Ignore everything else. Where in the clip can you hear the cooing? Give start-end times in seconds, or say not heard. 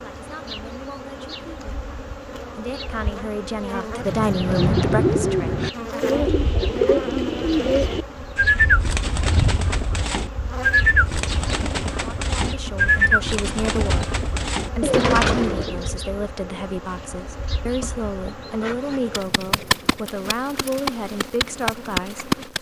4.0-15.9.